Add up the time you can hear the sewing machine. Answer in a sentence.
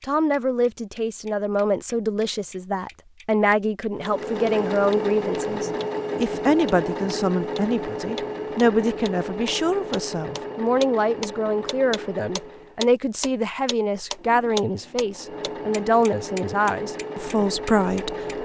You can hear the sewing machine for 13 seconds altogether.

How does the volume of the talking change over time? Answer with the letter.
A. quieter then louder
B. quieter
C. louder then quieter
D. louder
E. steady
E.